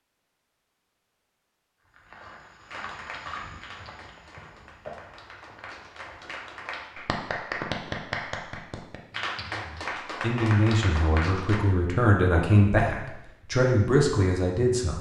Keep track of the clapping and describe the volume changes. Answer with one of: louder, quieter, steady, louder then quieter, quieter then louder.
louder.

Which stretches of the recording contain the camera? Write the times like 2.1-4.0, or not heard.
not heard.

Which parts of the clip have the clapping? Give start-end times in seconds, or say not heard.
2.7-11.7.